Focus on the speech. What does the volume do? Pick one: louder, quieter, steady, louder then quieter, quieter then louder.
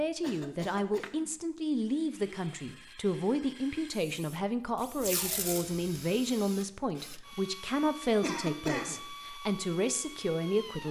steady.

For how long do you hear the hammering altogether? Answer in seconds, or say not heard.
not heard.